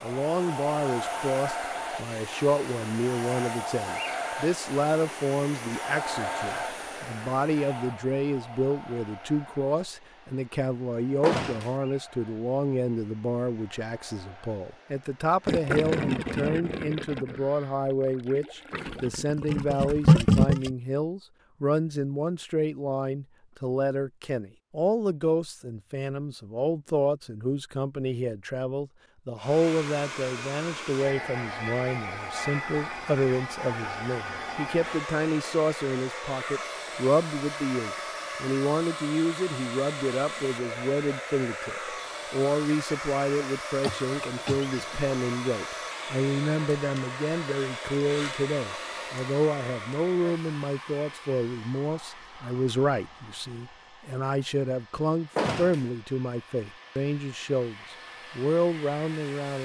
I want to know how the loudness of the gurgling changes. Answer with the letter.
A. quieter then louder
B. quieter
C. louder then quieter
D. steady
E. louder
A.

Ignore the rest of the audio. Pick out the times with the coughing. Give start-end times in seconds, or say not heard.
43.8-45.0.